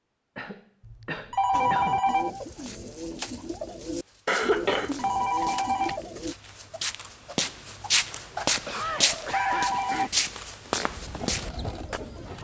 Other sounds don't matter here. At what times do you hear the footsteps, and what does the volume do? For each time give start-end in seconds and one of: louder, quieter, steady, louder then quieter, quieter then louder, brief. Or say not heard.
2.5-12.0 louder.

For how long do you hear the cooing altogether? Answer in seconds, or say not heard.
6 s.